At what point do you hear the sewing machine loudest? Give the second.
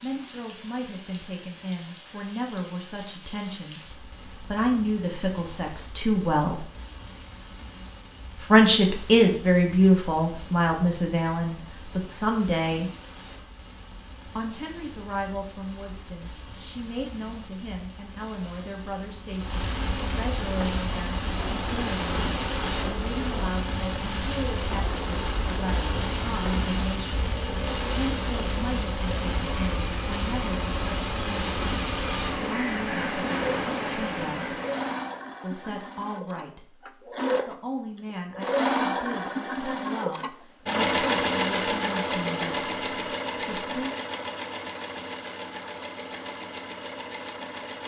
41 s.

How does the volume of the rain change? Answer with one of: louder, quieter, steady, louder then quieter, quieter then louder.
louder.